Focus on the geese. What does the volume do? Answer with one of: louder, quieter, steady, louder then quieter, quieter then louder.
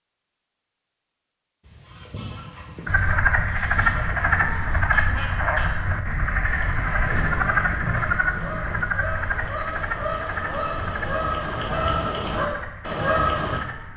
louder.